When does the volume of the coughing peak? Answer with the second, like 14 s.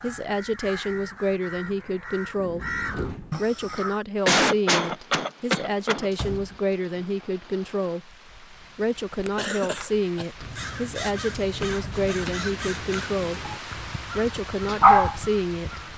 4 s.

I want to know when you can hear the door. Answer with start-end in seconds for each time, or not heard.
2.4-3.5, 6.1-7.0, 11.8-12.3.